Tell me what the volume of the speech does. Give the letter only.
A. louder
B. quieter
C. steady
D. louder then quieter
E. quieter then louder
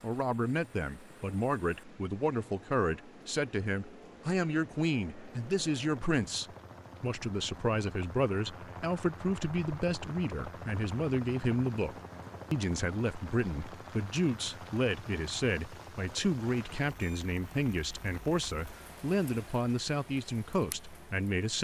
C.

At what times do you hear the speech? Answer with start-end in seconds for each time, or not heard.
0.0-21.5.